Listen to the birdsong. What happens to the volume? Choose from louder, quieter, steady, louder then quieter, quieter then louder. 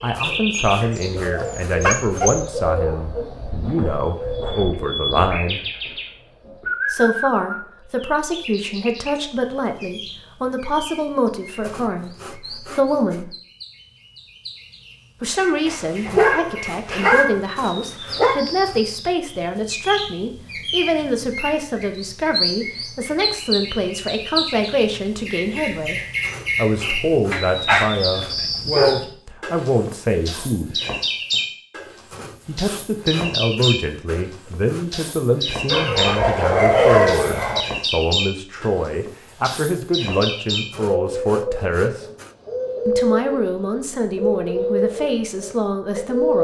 quieter then louder.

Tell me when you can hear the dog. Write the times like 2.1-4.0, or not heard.
0.5-2.4, 15.7-18.4, 27.3-29.0, 35.6-37.6.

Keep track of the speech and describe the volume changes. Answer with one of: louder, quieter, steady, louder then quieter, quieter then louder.
steady.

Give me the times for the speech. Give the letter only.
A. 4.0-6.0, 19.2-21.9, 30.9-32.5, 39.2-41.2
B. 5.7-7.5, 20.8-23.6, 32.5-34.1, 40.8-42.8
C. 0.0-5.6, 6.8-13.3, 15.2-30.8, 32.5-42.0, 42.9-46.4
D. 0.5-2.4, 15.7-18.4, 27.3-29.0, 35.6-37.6
C.